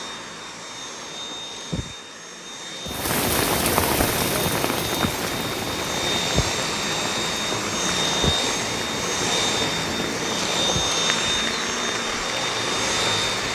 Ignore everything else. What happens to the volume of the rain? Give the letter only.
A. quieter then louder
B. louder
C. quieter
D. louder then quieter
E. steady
C.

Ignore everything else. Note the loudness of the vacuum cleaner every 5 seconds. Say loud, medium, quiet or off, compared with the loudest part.
medium, loud, loud.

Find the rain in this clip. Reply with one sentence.
The rain can be heard from 2.9 to 13.4 s.